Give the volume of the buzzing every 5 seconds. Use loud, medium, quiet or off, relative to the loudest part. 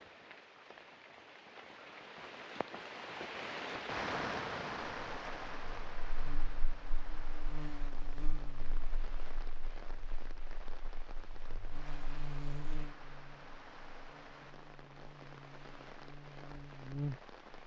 off, medium, medium, loud.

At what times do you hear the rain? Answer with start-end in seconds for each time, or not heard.
0.0-17.6.